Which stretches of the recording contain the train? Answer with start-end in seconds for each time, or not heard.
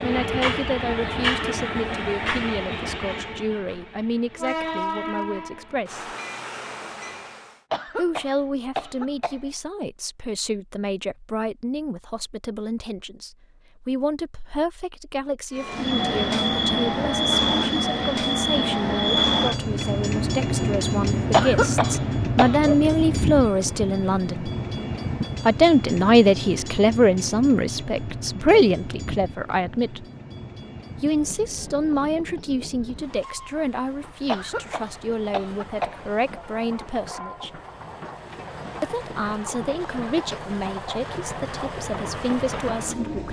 0.0-7.7, 15.6-43.2.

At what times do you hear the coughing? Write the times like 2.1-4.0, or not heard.
7.7-9.5, 21.3-22.6, 34.2-36.0.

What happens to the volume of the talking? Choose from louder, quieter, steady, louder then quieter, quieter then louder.
louder then quieter.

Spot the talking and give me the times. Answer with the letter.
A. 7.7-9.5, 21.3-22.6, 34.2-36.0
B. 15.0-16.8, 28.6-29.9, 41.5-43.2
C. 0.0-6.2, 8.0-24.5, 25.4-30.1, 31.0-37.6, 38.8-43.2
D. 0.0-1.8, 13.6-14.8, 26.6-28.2
C.